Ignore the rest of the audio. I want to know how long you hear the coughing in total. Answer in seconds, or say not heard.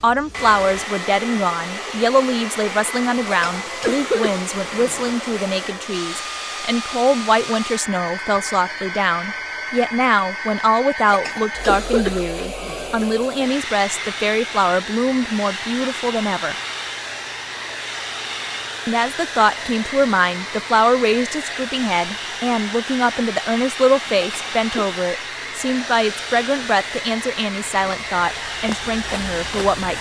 5 s.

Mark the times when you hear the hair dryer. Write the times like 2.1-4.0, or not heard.
0.0-29.9.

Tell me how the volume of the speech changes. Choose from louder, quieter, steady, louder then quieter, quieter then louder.
steady.